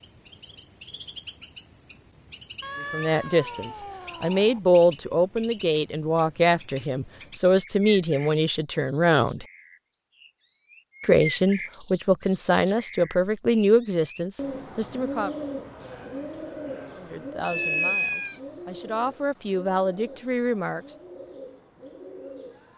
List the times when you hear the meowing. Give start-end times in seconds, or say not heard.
2.6-4.6, 17.4-18.4.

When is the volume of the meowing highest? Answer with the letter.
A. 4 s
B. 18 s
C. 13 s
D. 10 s
B.